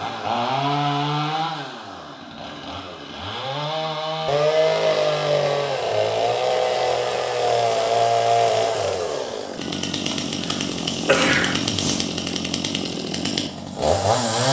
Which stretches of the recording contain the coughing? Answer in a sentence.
You can hear the coughing from 10.4 to 12.3 s.